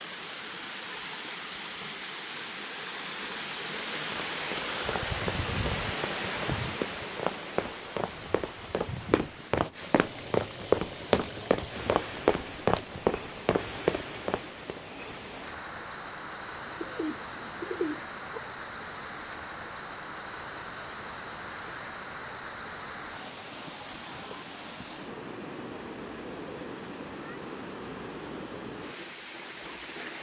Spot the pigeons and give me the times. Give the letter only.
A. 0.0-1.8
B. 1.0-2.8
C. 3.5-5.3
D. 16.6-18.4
D.